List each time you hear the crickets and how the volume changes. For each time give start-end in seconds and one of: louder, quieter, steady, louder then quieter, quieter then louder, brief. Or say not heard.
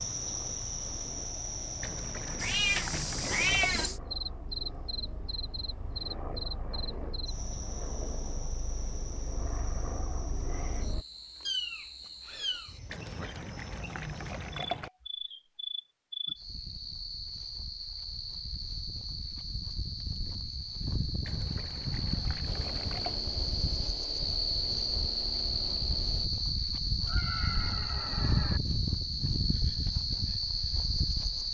0.0-31.4 quieter then louder.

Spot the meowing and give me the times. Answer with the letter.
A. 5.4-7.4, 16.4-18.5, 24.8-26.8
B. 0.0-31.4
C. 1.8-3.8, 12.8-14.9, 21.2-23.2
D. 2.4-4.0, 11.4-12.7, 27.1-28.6
D.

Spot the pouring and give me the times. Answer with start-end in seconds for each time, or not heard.
1.8-3.8, 12.8-14.9, 21.2-23.2.